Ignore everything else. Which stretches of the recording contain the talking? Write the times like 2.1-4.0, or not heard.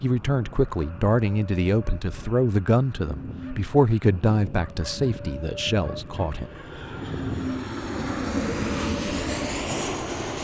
0.0-6.5.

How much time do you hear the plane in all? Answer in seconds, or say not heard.
10 s.